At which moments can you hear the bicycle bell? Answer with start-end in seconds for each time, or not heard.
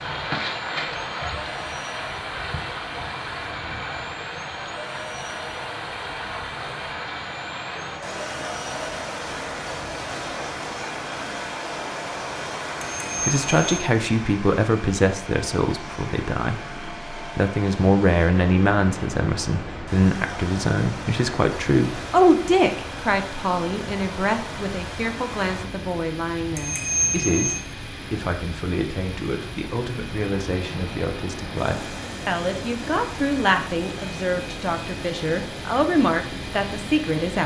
12.8-13.8, 26.6-27.6.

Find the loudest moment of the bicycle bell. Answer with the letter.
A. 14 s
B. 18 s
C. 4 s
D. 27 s
D.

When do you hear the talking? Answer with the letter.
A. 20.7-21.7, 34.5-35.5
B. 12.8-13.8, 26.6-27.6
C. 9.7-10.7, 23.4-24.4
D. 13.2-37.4
D.